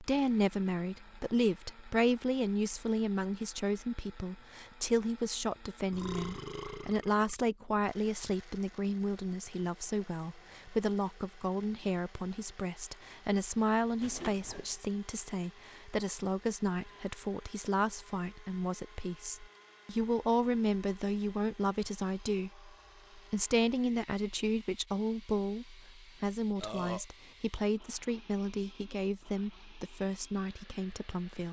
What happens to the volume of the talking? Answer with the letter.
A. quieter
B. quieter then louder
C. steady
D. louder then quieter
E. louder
C.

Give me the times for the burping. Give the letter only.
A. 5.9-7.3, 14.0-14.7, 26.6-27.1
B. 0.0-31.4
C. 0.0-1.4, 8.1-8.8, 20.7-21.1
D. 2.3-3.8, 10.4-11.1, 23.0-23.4
A.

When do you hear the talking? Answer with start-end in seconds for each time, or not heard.
0.0-31.4.